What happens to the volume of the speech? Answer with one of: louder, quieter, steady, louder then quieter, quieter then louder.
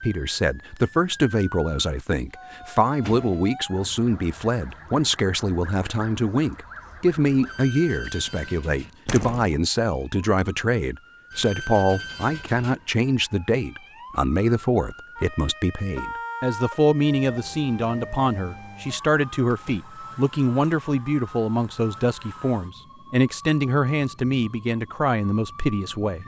steady.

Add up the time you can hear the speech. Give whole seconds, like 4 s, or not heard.
26 s.